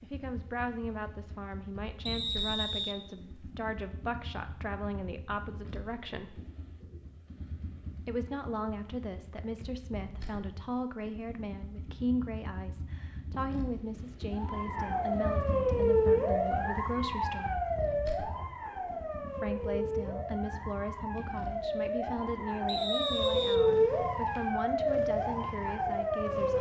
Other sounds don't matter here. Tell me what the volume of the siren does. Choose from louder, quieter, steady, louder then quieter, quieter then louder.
quieter then louder.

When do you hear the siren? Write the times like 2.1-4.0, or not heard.
14.3-26.5.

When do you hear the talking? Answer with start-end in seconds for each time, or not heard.
0.0-6.4, 8.1-17.6, 19.2-26.5.